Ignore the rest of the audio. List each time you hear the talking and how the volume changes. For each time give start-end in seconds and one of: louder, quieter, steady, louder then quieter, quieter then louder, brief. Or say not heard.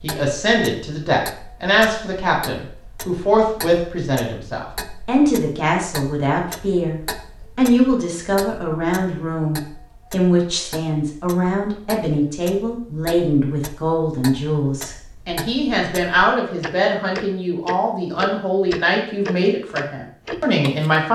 0.0-21.1 steady.